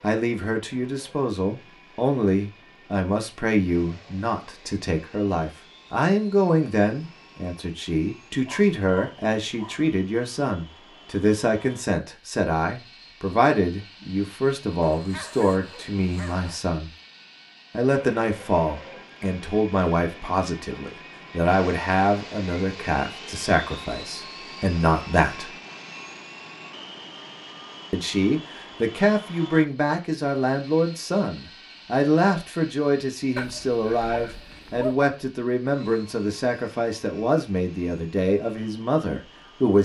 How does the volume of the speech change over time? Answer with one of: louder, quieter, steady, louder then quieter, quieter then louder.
steady.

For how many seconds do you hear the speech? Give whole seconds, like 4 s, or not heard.
37 s.